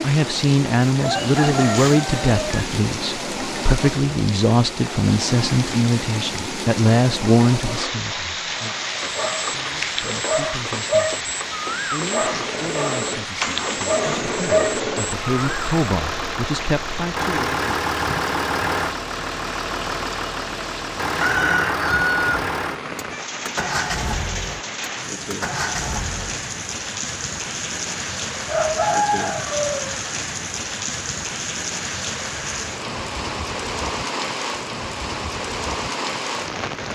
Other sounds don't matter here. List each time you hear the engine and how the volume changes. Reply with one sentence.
You can hear the engine from 12.1 to 26.4 s, at a steady volume.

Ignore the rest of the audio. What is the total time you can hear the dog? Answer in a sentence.
You can hear the dog for 7 seconds altogether.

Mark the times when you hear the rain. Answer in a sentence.
You can hear the rain from 0.0 to 36.9 s.